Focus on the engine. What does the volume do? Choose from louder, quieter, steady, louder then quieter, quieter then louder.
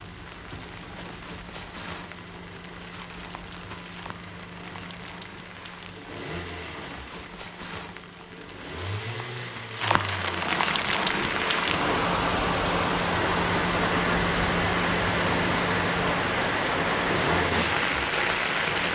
louder.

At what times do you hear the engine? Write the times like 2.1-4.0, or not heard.
0.0-18.9.